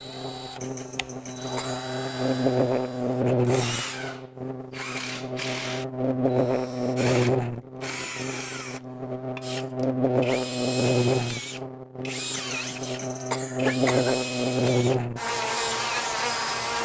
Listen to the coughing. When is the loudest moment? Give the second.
14 s.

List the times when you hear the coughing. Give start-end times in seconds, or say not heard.
0.6-1.8, 12.3-14.2.